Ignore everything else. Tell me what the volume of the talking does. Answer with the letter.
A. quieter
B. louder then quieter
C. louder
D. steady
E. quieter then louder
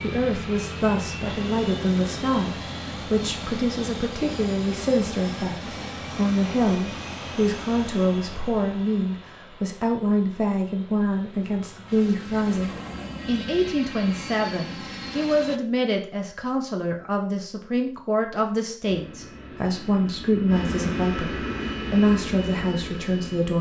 D.